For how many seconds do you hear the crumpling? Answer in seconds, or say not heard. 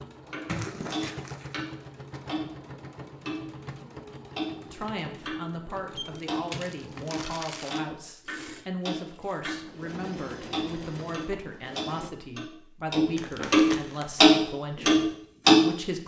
4 s.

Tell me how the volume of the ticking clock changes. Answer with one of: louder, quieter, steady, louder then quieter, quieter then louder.
louder.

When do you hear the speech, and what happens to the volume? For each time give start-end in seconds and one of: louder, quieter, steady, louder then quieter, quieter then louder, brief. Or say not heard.
4.7-16.0 steady.